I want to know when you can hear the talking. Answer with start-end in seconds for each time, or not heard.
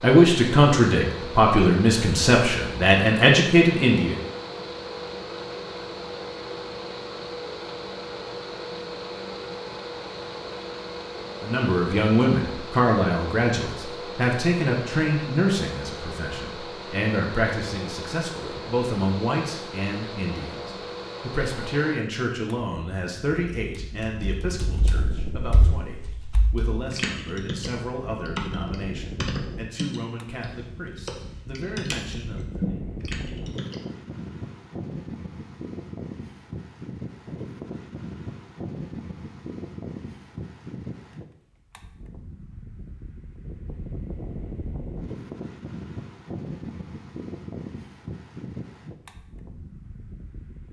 0.0-4.2, 11.4-32.8.